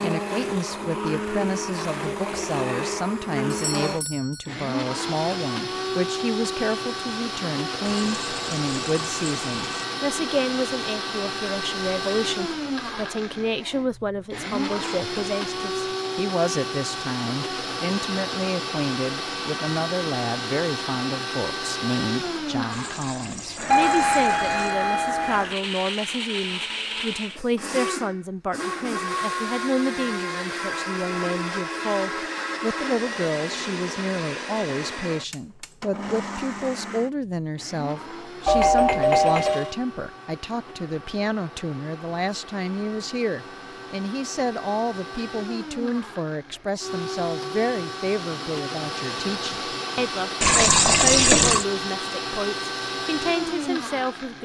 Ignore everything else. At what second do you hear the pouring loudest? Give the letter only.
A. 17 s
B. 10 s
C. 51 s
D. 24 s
C.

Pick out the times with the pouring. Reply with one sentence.
The pouring can be heard from 7.8 to 9.8 s, from 22.7 to 24.8 s and from 50.4 to 51.6 s.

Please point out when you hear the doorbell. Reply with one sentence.
The doorbell can be heard from 3.5 to 4.5 s, from 23.7 to 25.4 s and from 38.5 to 39.8 s.